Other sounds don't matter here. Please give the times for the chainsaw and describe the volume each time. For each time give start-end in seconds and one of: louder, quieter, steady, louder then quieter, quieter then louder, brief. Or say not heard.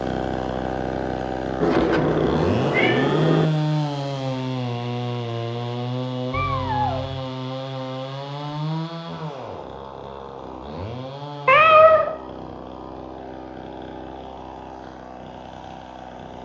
0.0-16.4 quieter.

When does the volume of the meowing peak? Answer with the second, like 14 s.
12 s.